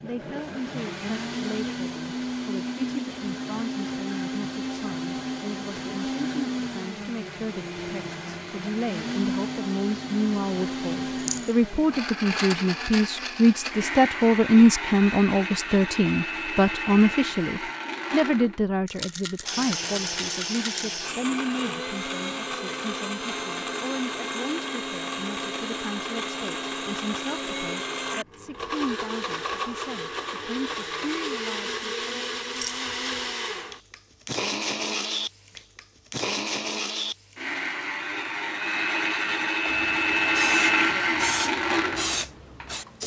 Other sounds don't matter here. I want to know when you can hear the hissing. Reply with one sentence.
The hissing can be heard from 39.7 to 43.0 s.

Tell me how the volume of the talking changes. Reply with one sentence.
The volume of the talking goes up, then down.